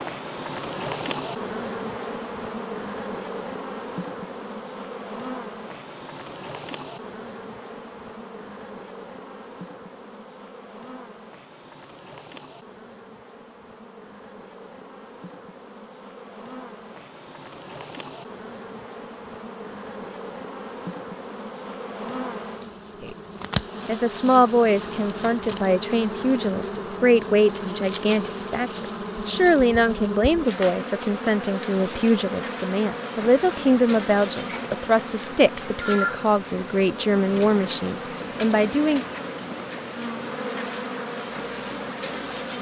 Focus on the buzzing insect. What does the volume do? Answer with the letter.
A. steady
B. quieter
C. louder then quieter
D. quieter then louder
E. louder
D.